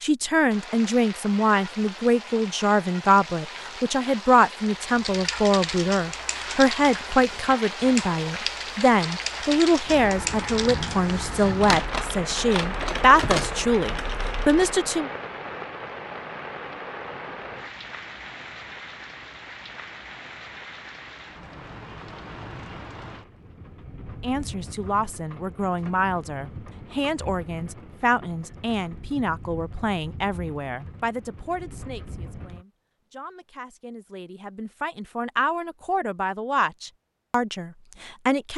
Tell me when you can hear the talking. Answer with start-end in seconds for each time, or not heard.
0.0-15.1, 24.2-38.5.